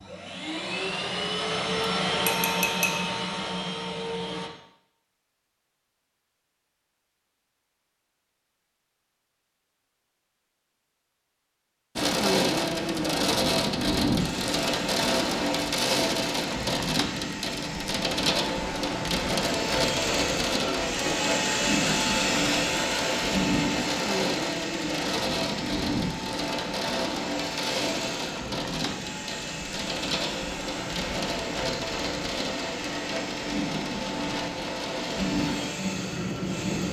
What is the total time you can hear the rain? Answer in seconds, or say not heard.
25 s.